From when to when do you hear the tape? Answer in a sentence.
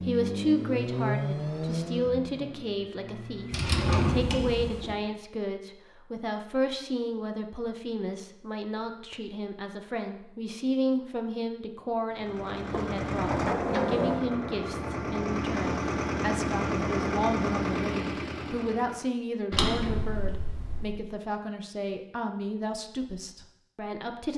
You can't hear the tape here.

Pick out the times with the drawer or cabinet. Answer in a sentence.
The drawer or cabinet can be heard from 3.5 to 5.0 s, from 12.7 to 14.3 s and from 19.5 to 21.0 s.